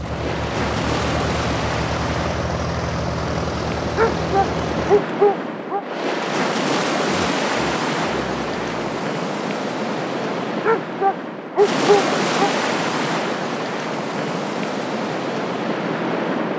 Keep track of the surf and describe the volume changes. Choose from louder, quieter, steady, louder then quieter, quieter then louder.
steady.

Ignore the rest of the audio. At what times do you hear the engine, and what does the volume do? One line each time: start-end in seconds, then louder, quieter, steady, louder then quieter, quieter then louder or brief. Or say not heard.
0.0-5.0 steady.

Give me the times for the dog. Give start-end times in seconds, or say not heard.
4.0-5.8, 10.6-12.5.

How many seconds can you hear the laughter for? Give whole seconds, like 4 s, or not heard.
2 s.